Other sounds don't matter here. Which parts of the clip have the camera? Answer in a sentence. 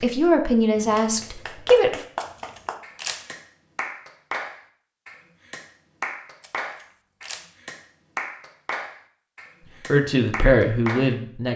The camera can be heard from 2.2 to 3.3 s and from 6.4 to 7.5 s.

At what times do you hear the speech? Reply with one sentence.
You can hear the speech from 0.0 to 2.0 s and from 9.9 to 11.5 s.